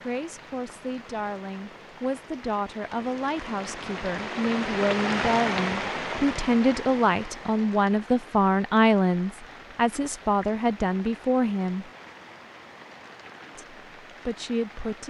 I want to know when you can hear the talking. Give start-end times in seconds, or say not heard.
0.0-11.9, 13.6-15.0.